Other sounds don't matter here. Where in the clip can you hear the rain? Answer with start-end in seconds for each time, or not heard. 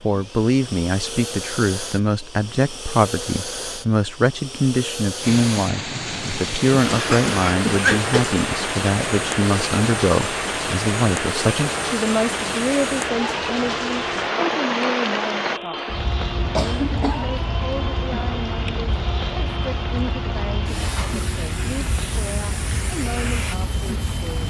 5.2-24.4.